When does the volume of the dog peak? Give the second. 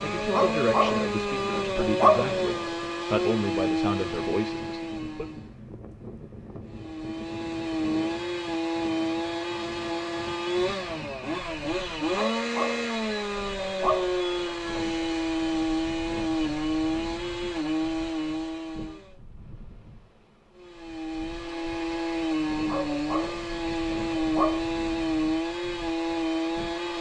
2 s.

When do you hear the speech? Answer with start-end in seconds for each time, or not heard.
0.0-5.2.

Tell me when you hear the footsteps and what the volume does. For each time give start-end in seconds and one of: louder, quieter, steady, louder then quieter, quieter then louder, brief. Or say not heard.
not heard.